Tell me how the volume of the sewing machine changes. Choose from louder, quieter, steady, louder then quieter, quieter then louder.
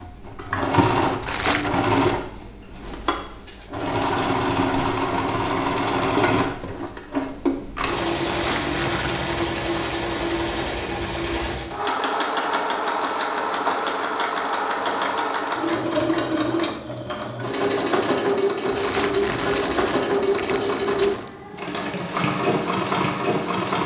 steady.